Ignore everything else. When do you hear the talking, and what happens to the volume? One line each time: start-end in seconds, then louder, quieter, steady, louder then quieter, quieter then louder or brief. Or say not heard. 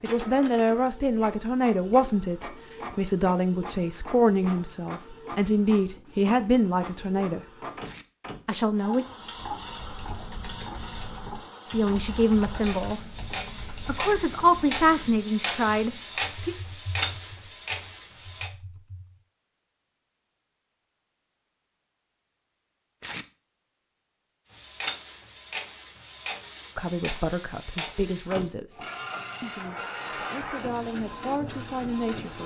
0.0-7.4 steady
8.4-9.1 brief
11.7-13.1 brief
13.8-16.6 brief
26.8-32.4 quieter then louder.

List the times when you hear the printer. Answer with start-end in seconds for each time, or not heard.
0.0-18.5, 24.5-32.4.